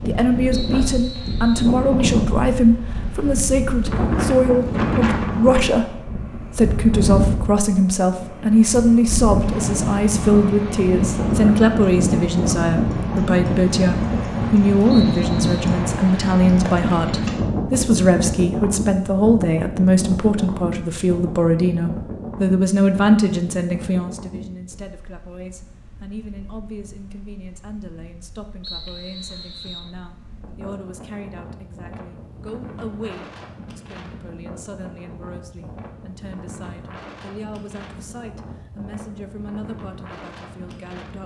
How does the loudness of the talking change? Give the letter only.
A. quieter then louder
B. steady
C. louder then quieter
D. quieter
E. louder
D.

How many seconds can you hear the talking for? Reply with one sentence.
You can hear the talking for 41 seconds altogether.